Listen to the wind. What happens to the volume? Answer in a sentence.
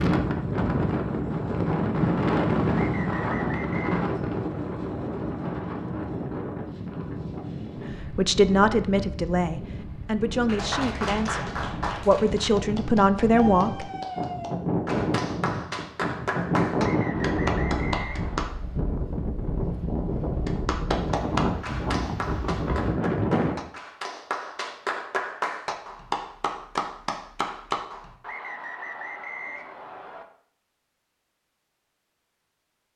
The loudness of the wind goes down, then up.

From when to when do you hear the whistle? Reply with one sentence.
The whistle can be heard from 2.7 to 4.0 s, from 16.8 to 18.6 s and from 28.2 to 30.2 s.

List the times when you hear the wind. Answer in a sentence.
You can hear the wind from 0.0 to 23.6 s.